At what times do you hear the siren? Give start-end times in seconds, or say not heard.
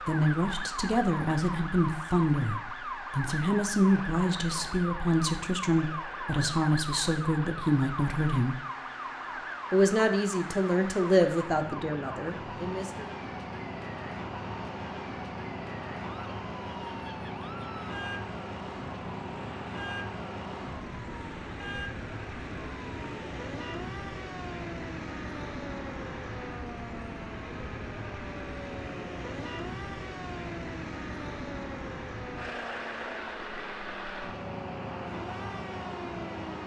0.0-36.6.